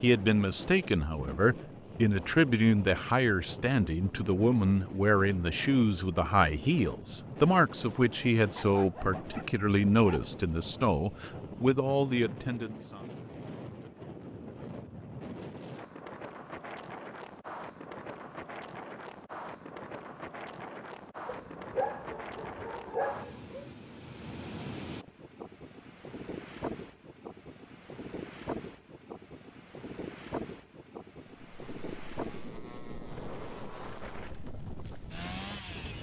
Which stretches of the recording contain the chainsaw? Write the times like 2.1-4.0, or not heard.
31.4-35.9.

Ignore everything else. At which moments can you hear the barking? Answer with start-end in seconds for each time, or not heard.
8.6-10.3, 21.2-23.6.